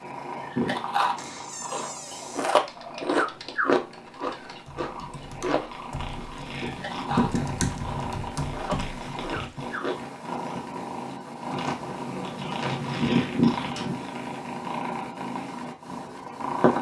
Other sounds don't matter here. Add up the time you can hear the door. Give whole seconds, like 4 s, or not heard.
4 s.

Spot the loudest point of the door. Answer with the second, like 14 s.
13 s.